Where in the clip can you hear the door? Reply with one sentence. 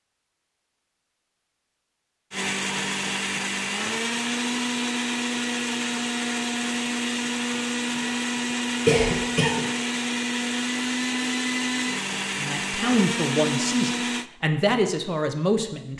You can't hear the door here.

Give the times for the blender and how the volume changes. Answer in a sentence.
The blender can be heard from 2.3 to 14.3 s, at a steady volume.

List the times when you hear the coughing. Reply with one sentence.
You can hear the coughing from 8.8 to 9.6 s.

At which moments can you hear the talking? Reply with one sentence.
The talking can be heard from 12.3 to 15.9 s.